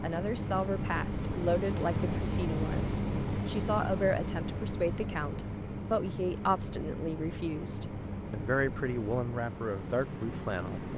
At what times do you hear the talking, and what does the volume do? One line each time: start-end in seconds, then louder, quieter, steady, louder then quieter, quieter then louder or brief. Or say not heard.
0.0-10.9 steady.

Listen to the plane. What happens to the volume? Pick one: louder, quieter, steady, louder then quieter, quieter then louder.
quieter.